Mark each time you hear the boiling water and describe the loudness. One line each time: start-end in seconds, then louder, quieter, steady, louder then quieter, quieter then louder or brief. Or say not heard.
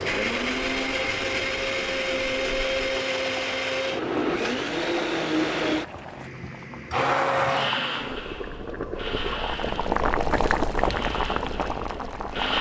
0.2-12.5 louder.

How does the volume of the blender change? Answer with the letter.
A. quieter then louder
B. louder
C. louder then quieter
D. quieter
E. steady
D.